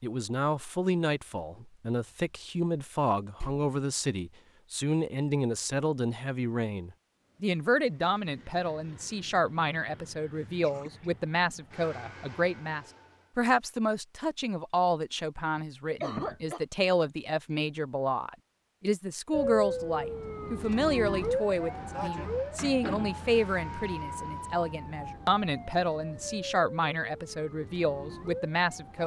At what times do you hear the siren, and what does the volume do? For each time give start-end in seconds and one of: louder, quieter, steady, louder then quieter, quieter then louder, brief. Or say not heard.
19.3-29.0 quieter.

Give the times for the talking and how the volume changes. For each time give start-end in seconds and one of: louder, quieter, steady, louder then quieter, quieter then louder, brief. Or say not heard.
0.0-29.0 steady.